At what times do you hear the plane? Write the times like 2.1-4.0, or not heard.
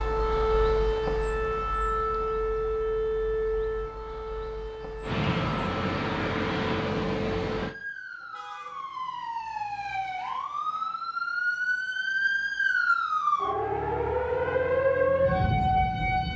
5.0-7.8.